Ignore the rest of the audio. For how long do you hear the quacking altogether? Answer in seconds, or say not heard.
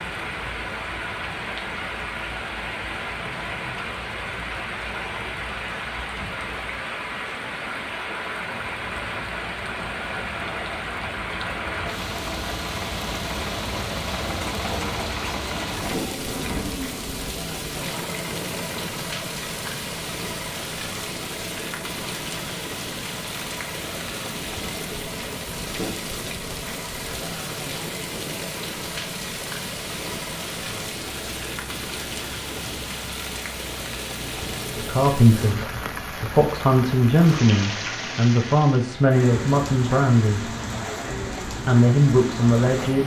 not heard.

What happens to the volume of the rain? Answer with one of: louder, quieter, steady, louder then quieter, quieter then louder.
steady.